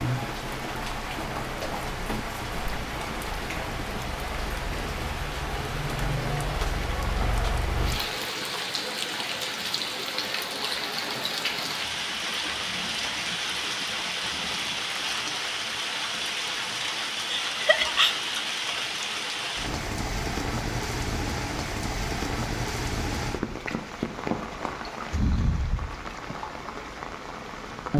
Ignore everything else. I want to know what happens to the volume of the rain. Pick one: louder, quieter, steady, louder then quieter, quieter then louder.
steady.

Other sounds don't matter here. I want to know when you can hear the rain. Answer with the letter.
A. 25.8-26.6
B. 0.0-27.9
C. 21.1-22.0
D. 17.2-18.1
B.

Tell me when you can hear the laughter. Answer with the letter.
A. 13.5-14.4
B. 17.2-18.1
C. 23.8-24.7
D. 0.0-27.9
B.